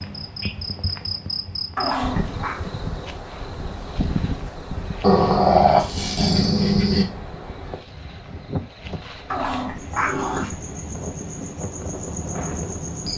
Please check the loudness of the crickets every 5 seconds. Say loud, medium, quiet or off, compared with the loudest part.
loud, medium, loud.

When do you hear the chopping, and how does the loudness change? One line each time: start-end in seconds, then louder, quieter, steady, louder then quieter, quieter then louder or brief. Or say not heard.
not heard.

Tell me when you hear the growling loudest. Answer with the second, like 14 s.
6 s.